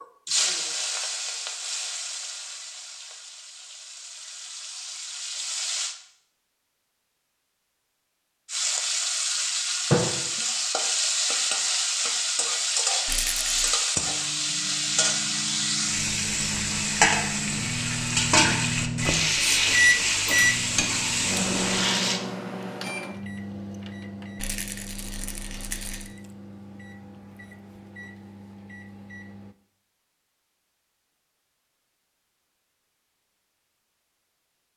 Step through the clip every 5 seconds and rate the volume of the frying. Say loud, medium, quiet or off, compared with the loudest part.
medium, loud, loud, loud, loud, off, off.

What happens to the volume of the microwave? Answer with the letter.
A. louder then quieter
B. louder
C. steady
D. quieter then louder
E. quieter
A.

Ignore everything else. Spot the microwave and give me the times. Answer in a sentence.
The microwave can be heard from 14.0 to 29.6 s.